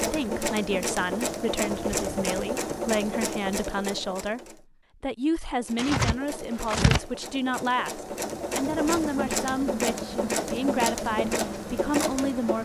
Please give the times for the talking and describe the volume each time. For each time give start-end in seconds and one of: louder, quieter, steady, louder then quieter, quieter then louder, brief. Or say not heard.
0.0-12.6 steady.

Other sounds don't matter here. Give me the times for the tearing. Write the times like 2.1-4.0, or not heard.
5.8-7.0.